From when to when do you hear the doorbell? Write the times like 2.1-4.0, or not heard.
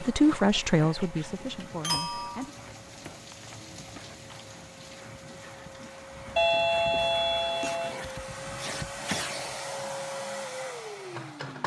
1.6-2.5, 6.3-8.0.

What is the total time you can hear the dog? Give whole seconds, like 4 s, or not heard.
not heard.